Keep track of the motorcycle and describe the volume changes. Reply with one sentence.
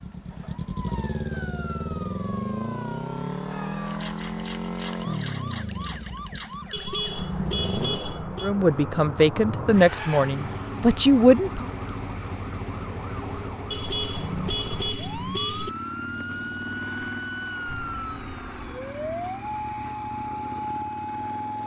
The volume of the motorcycle goes down.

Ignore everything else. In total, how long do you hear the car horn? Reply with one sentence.
The car horn can be heard for 4 seconds in total.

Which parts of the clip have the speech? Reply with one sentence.
You can hear the speech from 8.4 to 11.7 s.